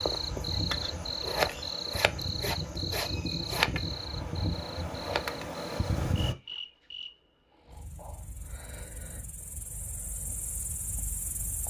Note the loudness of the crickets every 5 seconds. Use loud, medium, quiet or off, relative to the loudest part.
loud, medium, medium.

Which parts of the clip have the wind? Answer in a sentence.
The wind can be heard from 0.0 to 6.3 s.